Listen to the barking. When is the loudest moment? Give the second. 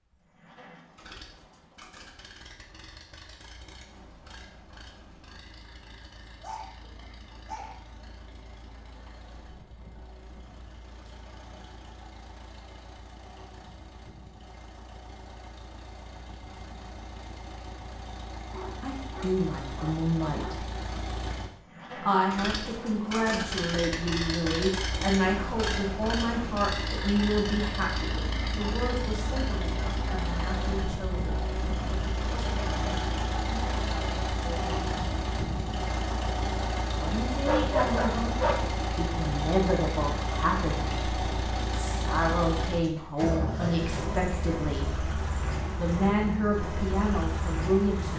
38 s.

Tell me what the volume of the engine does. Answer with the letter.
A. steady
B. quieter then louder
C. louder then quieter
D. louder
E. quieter
D.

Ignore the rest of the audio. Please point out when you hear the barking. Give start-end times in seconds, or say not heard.
6.4-7.8, 18.5-20.7, 37.5-38.7.